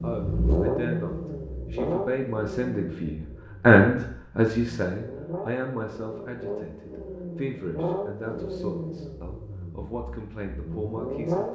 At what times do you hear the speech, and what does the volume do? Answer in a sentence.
The speech can be heard from 0.0 to 11.5 s, getting louder then quieter.